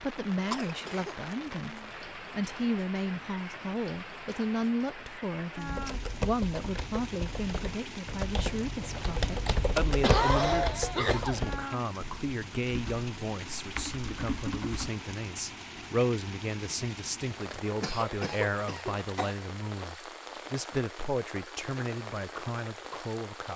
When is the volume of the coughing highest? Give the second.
10 s.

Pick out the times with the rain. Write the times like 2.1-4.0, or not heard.
0.0-23.5.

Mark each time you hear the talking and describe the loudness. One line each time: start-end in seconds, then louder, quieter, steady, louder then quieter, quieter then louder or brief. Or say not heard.
0.0-23.5 steady.